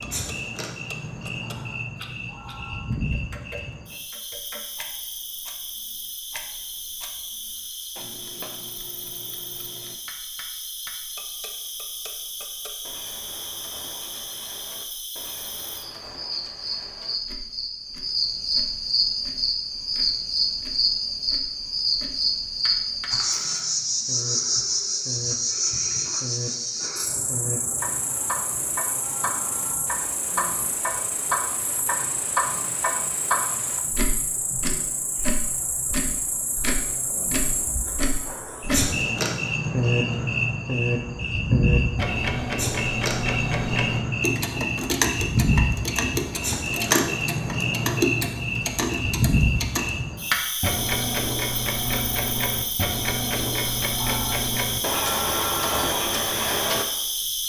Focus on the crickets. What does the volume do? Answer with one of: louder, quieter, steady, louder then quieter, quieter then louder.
louder.